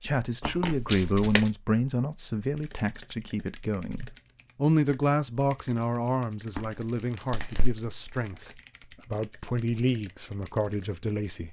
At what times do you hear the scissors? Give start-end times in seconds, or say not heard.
not heard.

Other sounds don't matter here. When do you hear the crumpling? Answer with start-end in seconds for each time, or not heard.
0.5-1.4, 6.5-8.3.